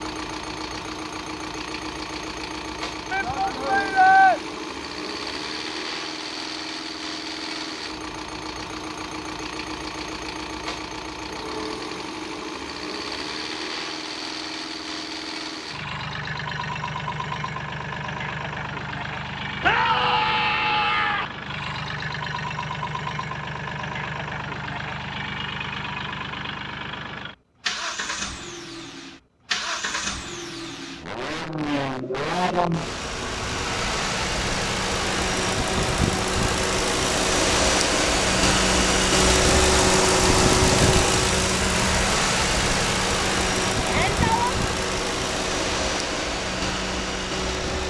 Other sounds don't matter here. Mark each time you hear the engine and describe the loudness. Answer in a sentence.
You can hear the engine from 0.0 to 47.8 s, getting louder.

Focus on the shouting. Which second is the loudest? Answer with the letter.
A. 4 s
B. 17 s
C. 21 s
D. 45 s
A.